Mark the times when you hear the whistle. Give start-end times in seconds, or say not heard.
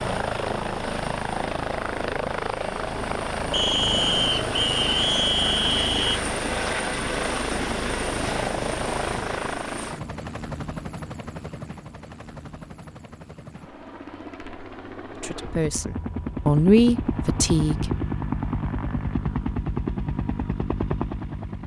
3.5-6.2.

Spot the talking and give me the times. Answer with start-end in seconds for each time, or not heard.
15.2-17.9.